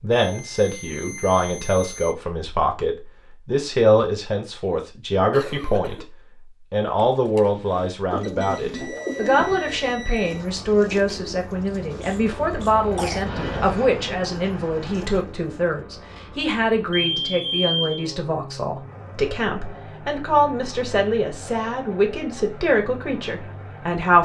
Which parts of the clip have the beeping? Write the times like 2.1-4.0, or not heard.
0.1-2.1, 8.2-10.4, 16.9-18.1.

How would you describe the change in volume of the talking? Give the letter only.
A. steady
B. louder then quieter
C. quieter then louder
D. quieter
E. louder
A.